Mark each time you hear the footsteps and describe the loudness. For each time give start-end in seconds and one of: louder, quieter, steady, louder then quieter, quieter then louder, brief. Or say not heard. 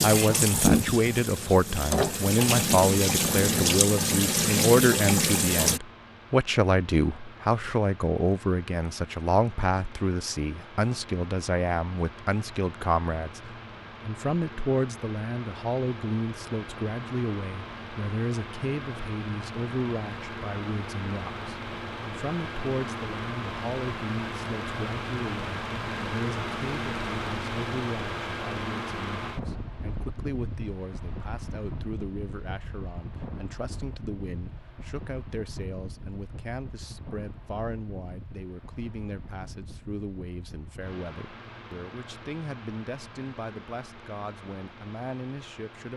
not heard.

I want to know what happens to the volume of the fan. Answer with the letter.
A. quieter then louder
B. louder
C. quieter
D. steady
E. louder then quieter
E.